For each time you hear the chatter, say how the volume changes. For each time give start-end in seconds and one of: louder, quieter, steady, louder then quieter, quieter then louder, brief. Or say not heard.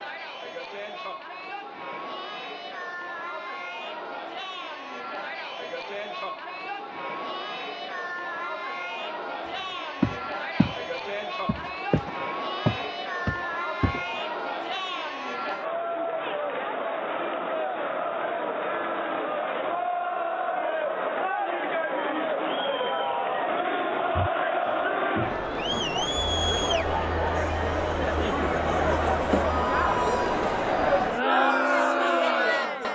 0.0-32.8 louder.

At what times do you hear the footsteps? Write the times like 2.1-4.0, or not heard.
9.6-10.8, 11.4-14.1, 24.1-25.9.